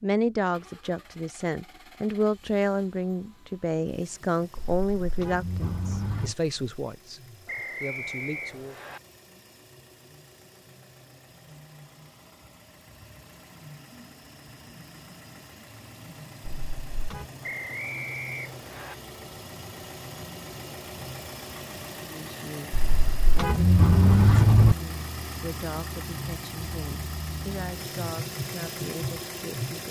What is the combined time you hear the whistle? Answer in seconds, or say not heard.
3 s.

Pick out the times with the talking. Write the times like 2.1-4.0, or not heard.
0.0-8.8, 22.0-29.8.